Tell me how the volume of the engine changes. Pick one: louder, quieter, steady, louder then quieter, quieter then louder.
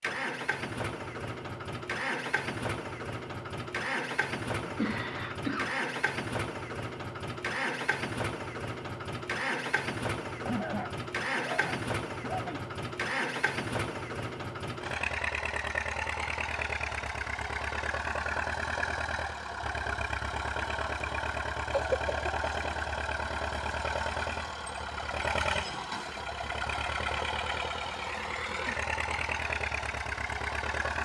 steady.